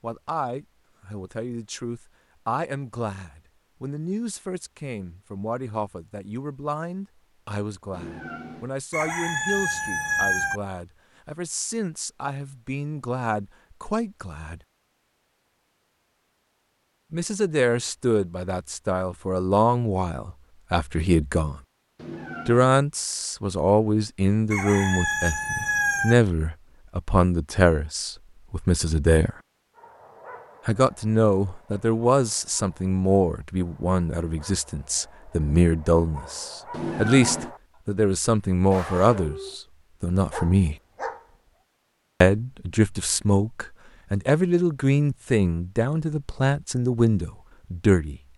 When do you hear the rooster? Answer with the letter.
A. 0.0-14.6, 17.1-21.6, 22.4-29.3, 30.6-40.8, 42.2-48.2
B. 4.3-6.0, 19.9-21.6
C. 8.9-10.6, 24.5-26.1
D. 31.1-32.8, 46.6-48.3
C.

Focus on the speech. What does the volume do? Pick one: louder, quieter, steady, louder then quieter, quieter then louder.
louder.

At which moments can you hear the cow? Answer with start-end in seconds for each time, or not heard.
not heard.